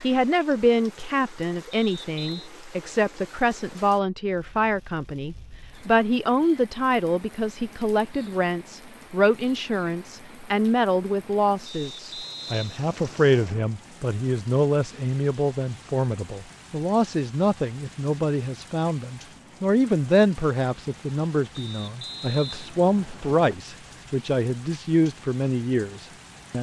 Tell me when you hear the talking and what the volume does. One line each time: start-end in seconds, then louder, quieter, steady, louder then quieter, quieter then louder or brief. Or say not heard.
0.0-26.5 steady.